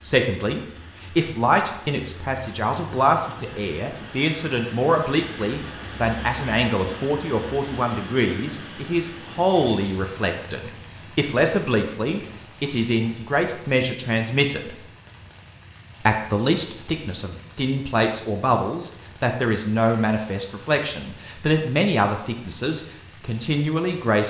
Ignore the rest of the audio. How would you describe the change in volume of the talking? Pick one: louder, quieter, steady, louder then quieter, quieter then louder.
steady.